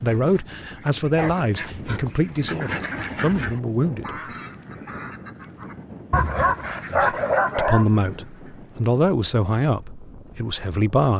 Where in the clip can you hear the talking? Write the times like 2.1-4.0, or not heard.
0.0-4.1, 6.9-11.1.